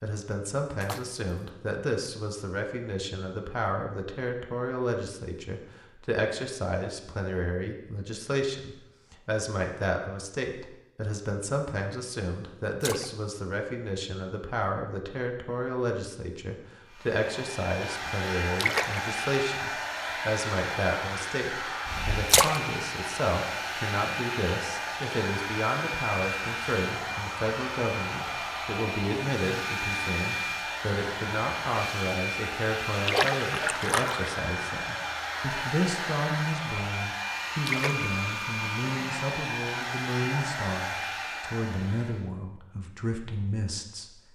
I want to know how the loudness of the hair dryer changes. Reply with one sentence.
The volume of the hair dryer stays about the same.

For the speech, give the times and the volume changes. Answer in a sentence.
The speech can be heard from 0.0 to 44.2 s, at a steady volume.